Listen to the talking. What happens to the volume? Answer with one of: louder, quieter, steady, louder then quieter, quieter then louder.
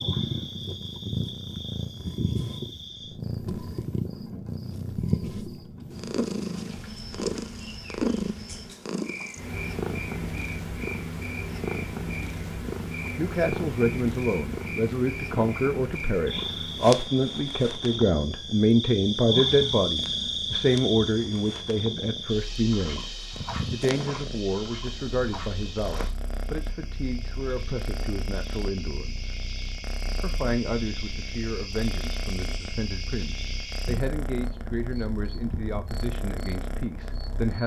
quieter.